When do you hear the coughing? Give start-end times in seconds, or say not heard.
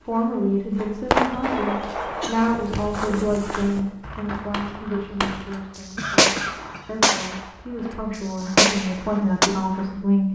1.5-2.6, 5.5-8.0.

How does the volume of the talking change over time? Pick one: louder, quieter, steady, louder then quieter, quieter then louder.
quieter then louder.